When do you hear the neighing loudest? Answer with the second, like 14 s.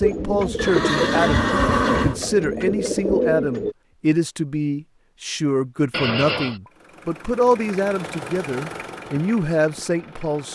2 s.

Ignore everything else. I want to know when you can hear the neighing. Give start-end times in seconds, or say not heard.
0.6-2.2, 5.9-6.6.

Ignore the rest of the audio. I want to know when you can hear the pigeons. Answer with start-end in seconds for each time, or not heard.
0.0-3.8.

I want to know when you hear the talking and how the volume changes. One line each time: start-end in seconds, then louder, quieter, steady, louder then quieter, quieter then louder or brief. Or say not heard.
0.0-10.5 steady.